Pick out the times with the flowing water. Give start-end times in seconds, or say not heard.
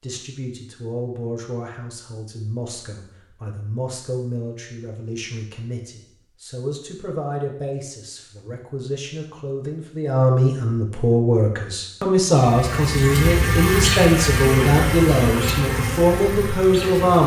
not heard.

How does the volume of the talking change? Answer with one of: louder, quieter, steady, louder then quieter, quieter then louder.
louder.